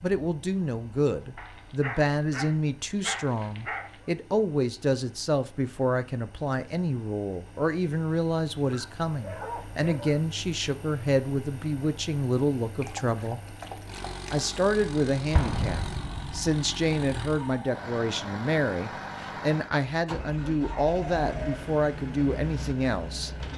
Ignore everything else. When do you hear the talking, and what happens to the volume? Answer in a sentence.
The talking can be heard from 0.0 to 13.4 s, at a steady volume; and from 14.3 to 23.3 s, at a steady volume.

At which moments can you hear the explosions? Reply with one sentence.
The explosions can be heard from 15.3 to 16.5 s.